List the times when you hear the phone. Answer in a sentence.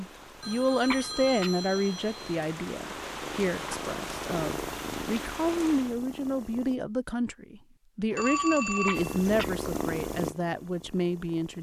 The phone can be heard from 0.4 to 2.4 s and from 8.1 to 9.2 s.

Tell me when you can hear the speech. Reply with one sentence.
You can hear the speech from 0.0 to 11.5 s.